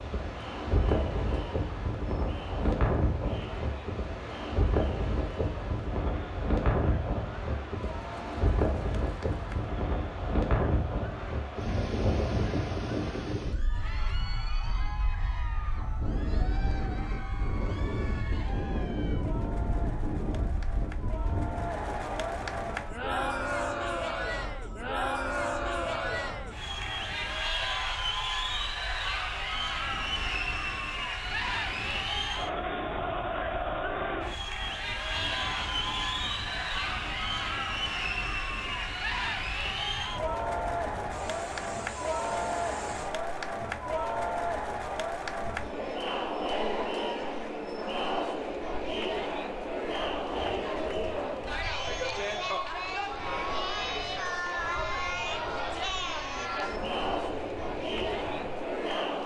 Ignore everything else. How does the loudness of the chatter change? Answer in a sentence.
The loudness of the chatter goes up.